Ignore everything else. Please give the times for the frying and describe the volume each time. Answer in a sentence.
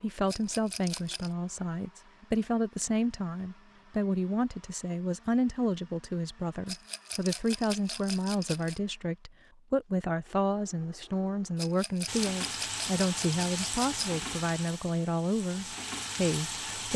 You can hear the frying from 12.1 to 16.9 s, getting quieter then louder.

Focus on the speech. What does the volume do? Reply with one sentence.
The loudness of the speech stays about the same.